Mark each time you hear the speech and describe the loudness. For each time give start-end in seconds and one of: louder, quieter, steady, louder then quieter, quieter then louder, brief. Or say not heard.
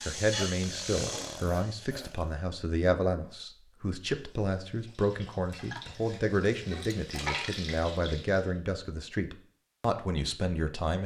0.0-11.0 steady.